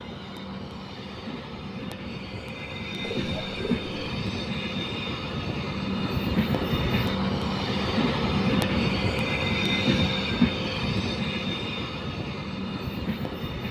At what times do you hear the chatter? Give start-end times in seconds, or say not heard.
not heard.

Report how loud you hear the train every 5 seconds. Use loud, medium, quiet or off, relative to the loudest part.
medium, loud, loud.